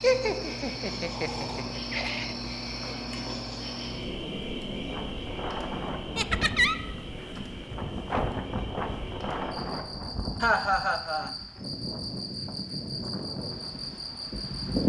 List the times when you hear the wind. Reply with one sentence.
You can hear the wind from 4.7 to 14.8 s.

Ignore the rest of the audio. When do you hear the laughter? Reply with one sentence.
The laughter can be heard from 0.0 to 2.4 s, from 6.2 to 6.8 s and from 10.4 to 11.3 s.